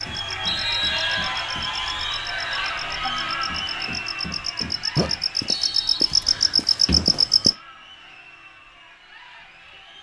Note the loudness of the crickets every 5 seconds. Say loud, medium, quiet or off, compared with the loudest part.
medium, loud.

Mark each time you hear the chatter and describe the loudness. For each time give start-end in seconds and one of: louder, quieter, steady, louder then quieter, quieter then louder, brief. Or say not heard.
0.0-9.9 quieter.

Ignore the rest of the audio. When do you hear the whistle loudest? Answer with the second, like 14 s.
1 s.